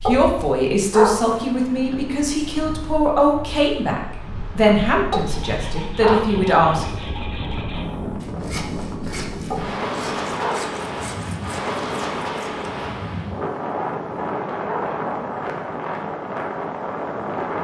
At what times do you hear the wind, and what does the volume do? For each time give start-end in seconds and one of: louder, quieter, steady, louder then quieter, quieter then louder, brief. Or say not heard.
0.0-17.5 louder.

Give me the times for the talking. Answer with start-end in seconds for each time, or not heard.
0.0-6.8.